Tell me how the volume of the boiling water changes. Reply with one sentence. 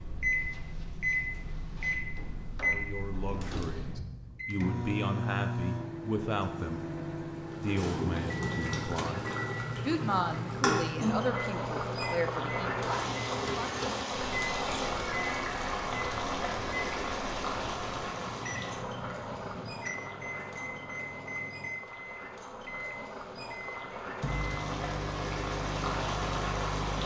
The volume of the boiling water goes down, then up.